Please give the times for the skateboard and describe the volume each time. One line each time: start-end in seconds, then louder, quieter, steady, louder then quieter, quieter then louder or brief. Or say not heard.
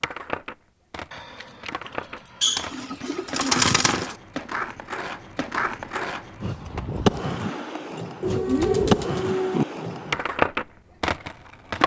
0.0-11.8 louder.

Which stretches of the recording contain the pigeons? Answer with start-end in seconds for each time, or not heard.
2.4-4.2, 8.2-9.7.